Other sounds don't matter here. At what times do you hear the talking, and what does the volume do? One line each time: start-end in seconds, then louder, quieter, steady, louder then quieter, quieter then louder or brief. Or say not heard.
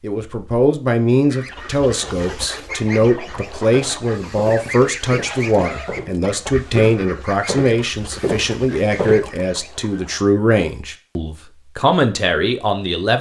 0.0-13.1 steady.